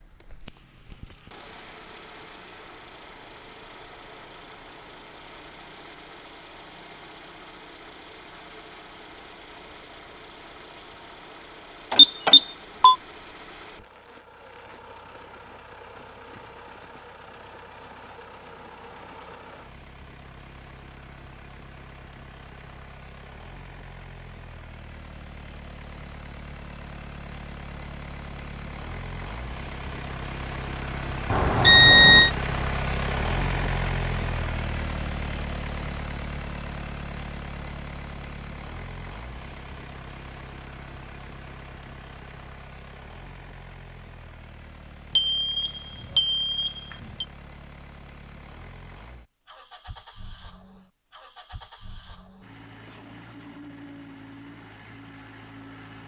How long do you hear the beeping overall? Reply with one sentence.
You can hear the beeping for 4 seconds altogether.